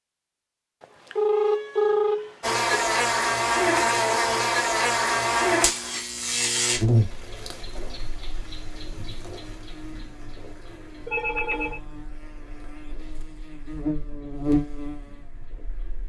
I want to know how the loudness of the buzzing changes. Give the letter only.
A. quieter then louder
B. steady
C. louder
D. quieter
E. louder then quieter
A.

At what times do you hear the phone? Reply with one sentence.
You can hear the phone from 0.8 to 2.8 s and from 11.1 to 11.8 s.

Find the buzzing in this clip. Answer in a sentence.
The buzzing can be heard from 2.4 to 16.0 s.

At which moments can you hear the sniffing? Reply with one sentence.
The sniffing can't be heard in this clip.